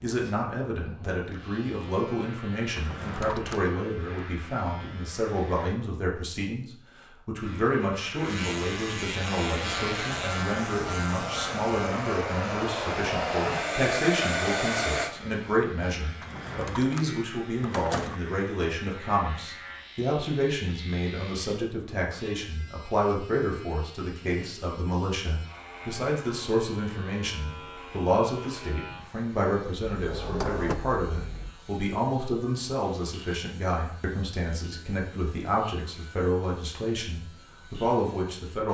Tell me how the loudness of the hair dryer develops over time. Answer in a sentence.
The loudness of the hair dryer goes up.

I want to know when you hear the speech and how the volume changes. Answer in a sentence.
You can hear the speech from 0.0 to 38.6 s, at a steady volume.